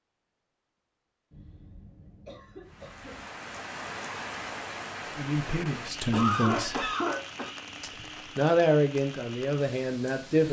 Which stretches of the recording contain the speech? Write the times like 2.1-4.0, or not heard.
5.2-6.9, 7.8-10.4.